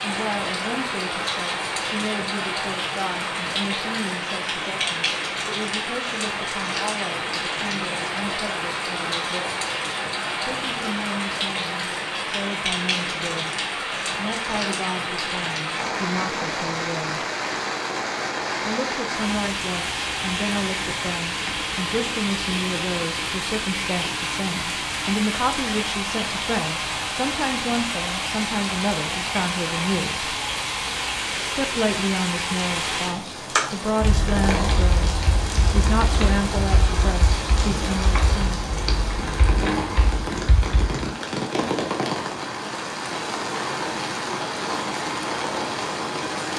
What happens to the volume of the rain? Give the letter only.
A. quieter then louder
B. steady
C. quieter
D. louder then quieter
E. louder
B.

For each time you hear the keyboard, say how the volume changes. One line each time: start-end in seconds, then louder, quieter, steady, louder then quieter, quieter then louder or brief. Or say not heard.
33.5-41.0 steady.